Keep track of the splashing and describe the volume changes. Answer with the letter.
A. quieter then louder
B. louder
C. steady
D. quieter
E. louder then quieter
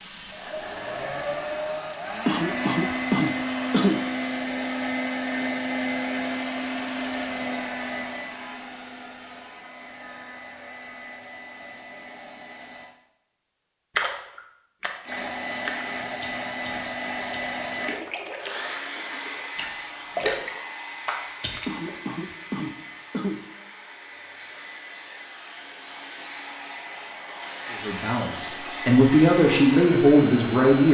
A.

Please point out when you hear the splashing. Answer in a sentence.
You can hear the splashing from 13.9 to 21.9 s.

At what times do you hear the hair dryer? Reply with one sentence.
The hair dryer can be heard from 0.0 to 12.9 s and from 15.0 to 30.8 s.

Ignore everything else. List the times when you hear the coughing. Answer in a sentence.
The coughing can be heard from 2.2 to 4.0 s and from 21.6 to 23.4 s.